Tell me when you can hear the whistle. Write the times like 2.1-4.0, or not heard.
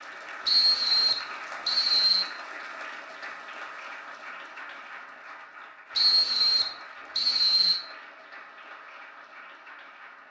0.5-2.2, 6.0-7.8.